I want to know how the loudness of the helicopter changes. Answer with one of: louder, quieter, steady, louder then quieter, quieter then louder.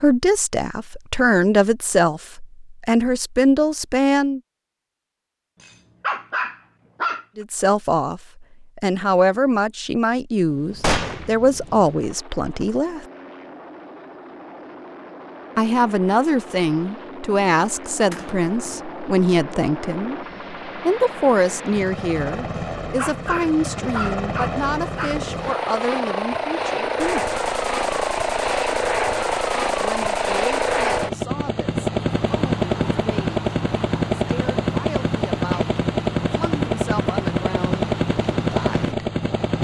louder.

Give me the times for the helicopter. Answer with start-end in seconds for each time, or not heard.
10.3-39.5.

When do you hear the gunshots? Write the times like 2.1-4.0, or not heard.
10.8-11.3, 18.1-18.9, 27.0-31.1.